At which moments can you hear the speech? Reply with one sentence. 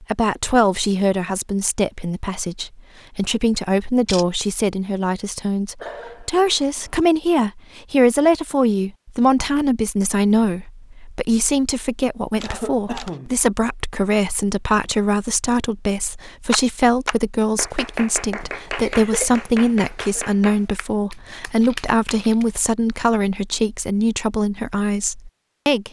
The speech can be heard from 0.0 to 25.8 s.